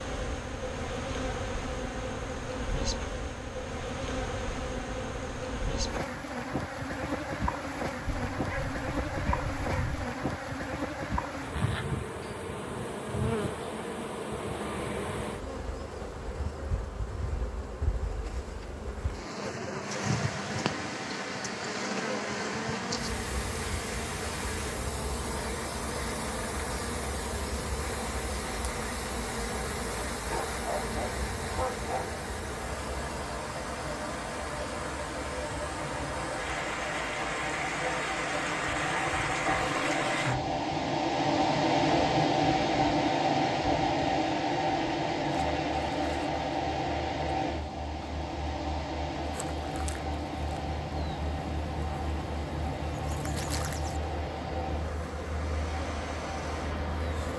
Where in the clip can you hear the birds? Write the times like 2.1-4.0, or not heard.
not heard.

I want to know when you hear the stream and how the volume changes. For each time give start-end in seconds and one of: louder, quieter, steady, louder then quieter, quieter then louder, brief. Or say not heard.
19.8-57.3 louder then quieter.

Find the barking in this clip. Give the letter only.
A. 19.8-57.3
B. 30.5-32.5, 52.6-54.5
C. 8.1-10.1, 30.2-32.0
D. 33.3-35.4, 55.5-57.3
C.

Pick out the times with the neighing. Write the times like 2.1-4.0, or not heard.
not heard.